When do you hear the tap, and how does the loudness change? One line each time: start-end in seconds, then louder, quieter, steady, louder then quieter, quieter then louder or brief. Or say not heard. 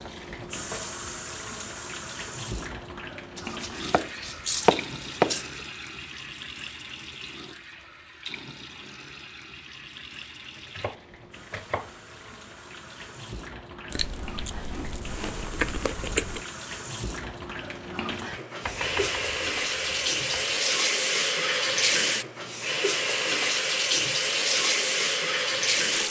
0.0-26.0 quieter then louder.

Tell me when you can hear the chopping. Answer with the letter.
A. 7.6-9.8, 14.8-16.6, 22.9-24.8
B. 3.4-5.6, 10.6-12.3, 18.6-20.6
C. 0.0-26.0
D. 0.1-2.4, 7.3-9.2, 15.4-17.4
B.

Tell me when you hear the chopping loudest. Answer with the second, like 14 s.
5 s.